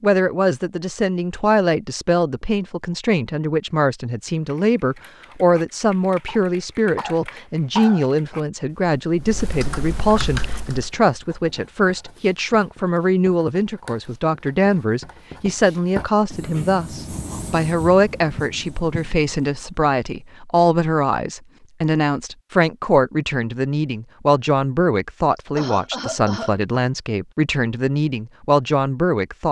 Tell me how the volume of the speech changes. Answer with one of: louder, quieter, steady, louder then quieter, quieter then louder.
steady.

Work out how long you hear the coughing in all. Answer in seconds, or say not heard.
3 s.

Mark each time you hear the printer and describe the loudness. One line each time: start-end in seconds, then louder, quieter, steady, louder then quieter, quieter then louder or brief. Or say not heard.
not heard.